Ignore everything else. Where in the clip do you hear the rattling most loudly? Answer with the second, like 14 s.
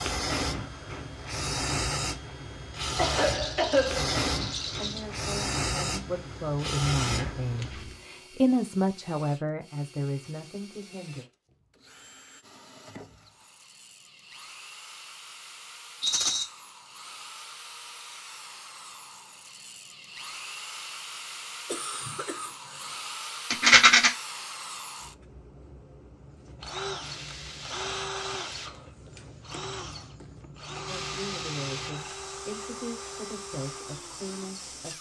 24 s.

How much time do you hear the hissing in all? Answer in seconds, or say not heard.
17 s.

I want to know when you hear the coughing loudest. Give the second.
4 s.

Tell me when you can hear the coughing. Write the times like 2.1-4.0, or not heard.
3.0-4.1, 21.6-22.9.